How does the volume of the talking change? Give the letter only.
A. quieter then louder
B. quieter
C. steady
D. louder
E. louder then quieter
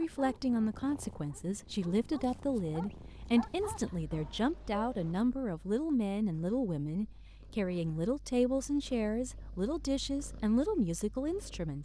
C.